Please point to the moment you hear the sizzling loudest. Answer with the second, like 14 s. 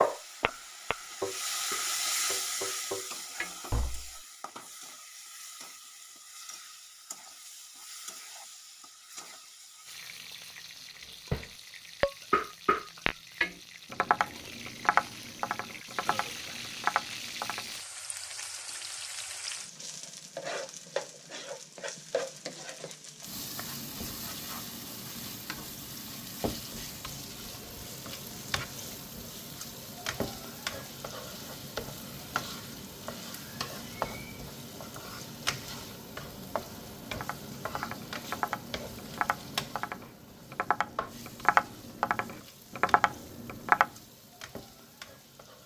2 s.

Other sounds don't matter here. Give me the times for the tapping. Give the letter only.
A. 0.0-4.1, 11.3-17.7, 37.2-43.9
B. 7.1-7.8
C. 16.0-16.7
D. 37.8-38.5
A.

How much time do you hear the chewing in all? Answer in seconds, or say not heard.
not heard.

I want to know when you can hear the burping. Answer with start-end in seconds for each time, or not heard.
16.0-16.7.